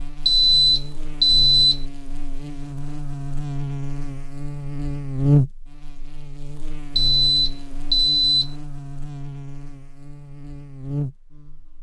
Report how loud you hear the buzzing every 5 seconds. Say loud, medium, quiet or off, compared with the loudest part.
medium, loud, medium.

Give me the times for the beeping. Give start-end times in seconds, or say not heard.
0.2-1.8, 7.0-8.5.